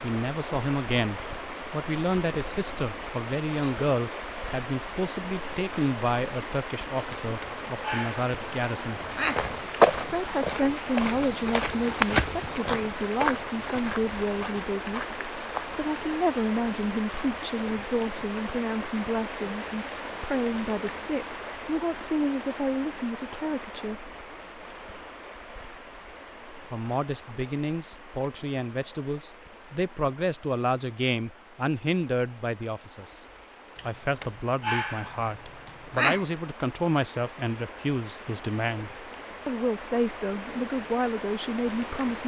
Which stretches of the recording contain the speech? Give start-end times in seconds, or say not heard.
0.0-9.1, 10.1-15.1, 15.8-24.0, 26.7-33.2, 33.9-42.2.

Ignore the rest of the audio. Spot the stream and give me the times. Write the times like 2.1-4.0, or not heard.
0.0-42.2.